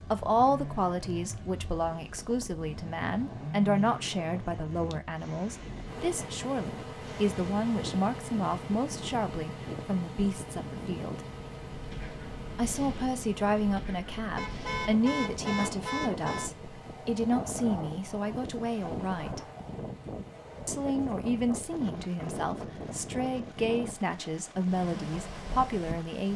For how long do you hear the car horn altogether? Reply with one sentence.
The car horn can be heard for 2 seconds in total.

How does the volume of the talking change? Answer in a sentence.
The volume of the talking stays about the same.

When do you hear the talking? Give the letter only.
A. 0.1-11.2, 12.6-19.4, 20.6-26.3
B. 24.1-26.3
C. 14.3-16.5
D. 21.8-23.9
A.